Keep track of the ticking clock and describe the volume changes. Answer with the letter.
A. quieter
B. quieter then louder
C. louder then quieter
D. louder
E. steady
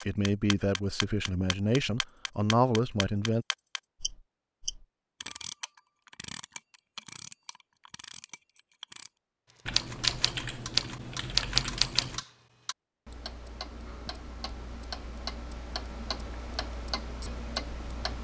B.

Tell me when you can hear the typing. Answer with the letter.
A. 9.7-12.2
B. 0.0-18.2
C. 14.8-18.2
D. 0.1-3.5
A.